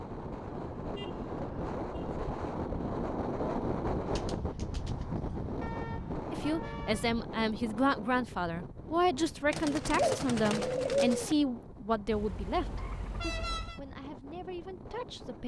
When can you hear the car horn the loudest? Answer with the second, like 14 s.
13 s.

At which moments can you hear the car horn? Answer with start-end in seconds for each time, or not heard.
0.1-2.2, 5.6-7.2, 12.1-13.8.